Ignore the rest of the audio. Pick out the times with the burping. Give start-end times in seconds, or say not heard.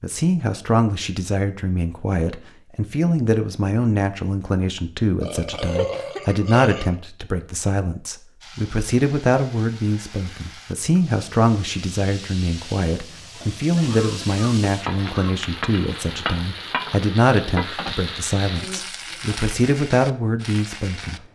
5.2-7.0.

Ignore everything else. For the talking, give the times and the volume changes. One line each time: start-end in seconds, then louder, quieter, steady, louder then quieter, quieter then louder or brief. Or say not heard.
0.0-21.2 steady.